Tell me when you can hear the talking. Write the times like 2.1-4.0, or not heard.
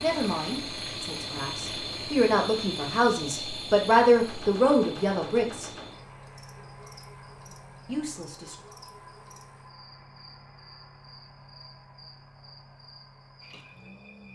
0.0-5.7, 7.8-8.6.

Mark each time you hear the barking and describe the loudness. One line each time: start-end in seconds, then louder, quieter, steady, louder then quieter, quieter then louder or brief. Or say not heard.
not heard.